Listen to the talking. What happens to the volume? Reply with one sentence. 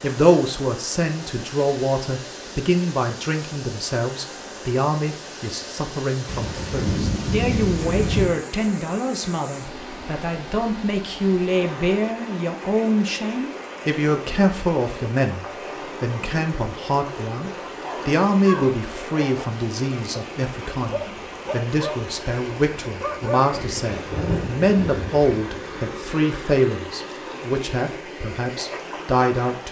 The loudness of the talking stays about the same.